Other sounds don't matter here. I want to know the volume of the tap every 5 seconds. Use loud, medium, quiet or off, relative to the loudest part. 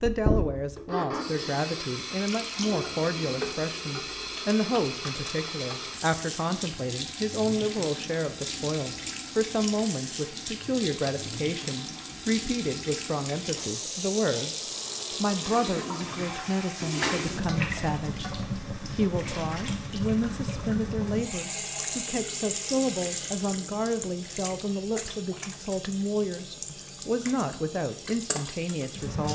loud, loud, loud, loud, loud, medium.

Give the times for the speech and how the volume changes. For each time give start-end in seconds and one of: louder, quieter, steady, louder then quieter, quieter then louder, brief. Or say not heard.
0.0-29.3 steady.